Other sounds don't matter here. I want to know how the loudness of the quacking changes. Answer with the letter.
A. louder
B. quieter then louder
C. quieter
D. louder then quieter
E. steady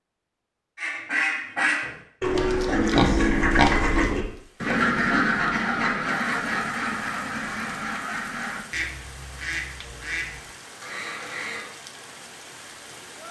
C.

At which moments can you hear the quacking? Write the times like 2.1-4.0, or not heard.
0.8-11.7.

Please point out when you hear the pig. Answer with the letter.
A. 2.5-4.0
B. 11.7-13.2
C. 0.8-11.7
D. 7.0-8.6
A.